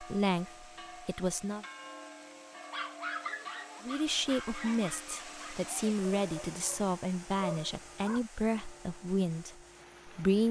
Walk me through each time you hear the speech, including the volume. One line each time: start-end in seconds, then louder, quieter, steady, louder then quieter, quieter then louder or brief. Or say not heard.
0.0-1.6 brief
3.8-10.4 steady.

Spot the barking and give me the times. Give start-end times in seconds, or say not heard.
2.5-8.2.